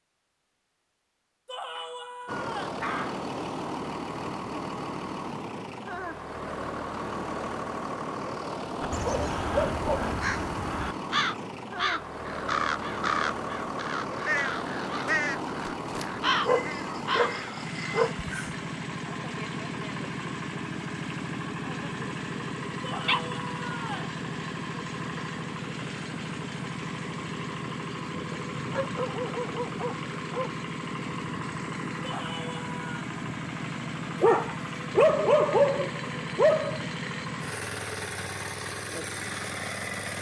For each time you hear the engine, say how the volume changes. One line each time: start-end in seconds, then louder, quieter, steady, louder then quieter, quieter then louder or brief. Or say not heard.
2.2-40.1 steady.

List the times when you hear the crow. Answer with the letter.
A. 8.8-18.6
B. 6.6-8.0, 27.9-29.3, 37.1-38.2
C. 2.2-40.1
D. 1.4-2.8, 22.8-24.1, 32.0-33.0
A.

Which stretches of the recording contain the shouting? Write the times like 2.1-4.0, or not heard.
1.4-2.8, 22.8-24.1, 32.0-33.0.